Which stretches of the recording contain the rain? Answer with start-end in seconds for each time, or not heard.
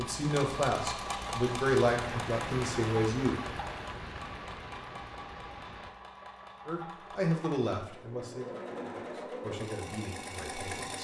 0.0-6.0.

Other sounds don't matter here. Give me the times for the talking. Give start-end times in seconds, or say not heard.
0.0-3.4, 6.7-11.0.